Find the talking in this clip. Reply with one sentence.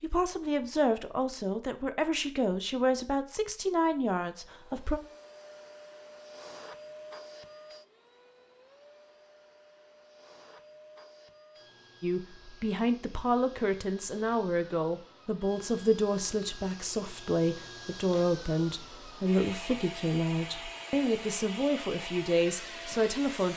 The talking can be heard from 0.0 to 5.0 s and from 12.0 to 23.5 s.